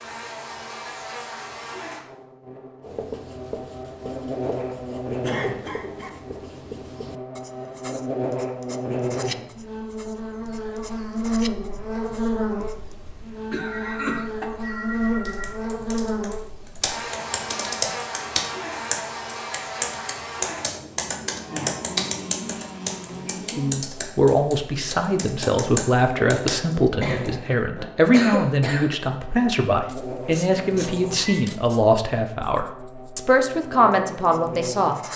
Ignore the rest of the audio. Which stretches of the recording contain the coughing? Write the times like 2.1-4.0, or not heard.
5.2-6.2, 12.6-14.5, 27.0-28.9.